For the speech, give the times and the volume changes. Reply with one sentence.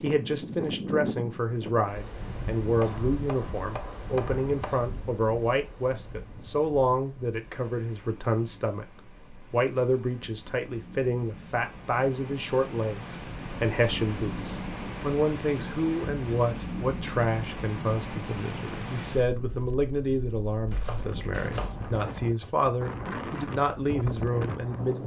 The speech can be heard from 0.0 to 25.0 s, at a steady volume.